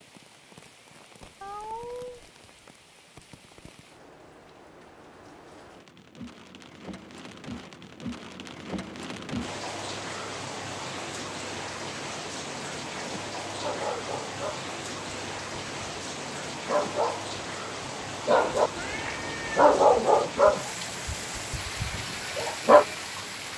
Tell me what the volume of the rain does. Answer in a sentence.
The volume of the rain goes up.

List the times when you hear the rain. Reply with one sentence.
The rain can be heard from 0.0 to 23.5 s.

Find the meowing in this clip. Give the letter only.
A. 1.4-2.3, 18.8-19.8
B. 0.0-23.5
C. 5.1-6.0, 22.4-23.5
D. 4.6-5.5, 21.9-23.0
A.